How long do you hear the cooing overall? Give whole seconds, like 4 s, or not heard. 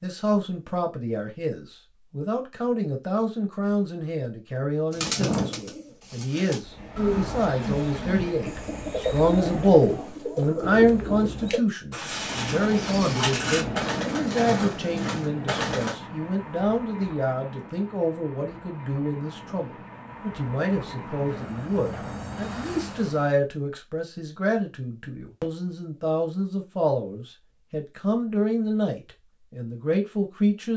11 s.